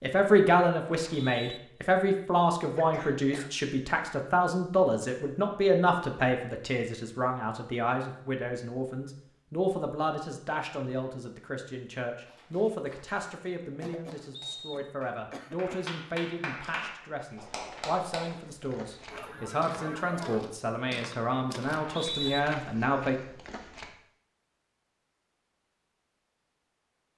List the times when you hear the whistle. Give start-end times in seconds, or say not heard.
0.9-1.6, 14.3-14.9, 21.6-22.4.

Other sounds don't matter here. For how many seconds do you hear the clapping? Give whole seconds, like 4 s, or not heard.
6 s.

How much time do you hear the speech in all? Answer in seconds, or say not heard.
23 s.